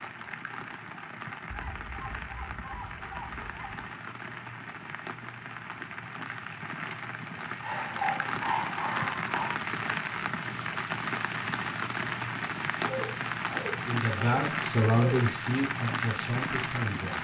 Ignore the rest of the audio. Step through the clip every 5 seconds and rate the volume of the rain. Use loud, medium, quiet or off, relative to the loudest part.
medium, loud, loud, loud.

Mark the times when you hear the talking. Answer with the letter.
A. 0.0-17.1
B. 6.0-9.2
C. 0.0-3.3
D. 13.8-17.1
D.